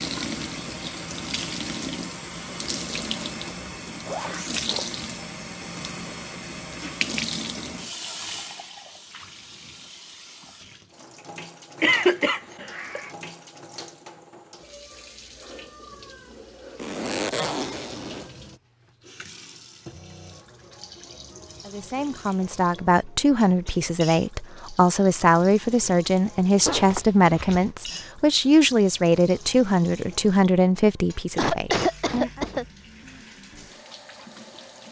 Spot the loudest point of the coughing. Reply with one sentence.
The loudest moment of the coughing is at 12 seconds.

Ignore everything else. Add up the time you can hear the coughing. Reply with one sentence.
You can hear the coughing for 3 seconds altogether.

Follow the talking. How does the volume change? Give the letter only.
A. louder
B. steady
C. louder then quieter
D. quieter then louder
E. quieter
B.